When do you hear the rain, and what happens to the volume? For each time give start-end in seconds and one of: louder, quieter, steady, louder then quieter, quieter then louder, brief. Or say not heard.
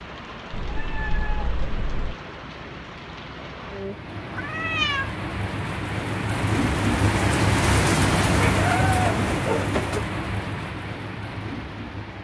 0.0-12.1 louder then quieter.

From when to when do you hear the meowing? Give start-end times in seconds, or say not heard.
0.5-2.1, 4.3-5.2, 8.3-10.1.